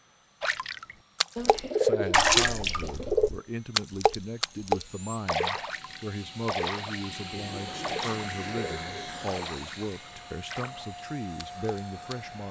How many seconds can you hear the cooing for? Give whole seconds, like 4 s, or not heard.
4 s.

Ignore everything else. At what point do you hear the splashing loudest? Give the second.
2 s.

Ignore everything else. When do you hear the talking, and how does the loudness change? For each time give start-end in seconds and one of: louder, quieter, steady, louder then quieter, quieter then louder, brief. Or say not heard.
1.8-12.4 steady.